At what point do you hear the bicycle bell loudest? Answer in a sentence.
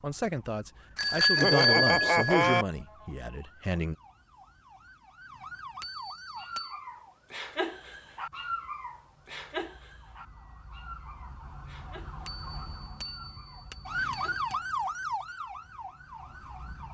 The loudest moment of the bicycle bell is at 2 seconds.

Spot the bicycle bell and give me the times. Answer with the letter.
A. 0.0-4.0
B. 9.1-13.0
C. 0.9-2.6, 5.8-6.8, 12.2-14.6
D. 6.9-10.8
C.